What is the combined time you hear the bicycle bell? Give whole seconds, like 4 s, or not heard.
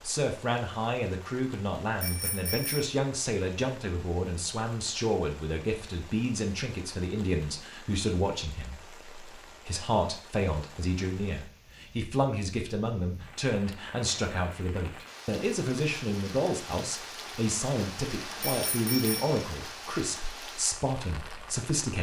2 s.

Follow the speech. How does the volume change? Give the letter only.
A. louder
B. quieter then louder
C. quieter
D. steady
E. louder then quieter
D.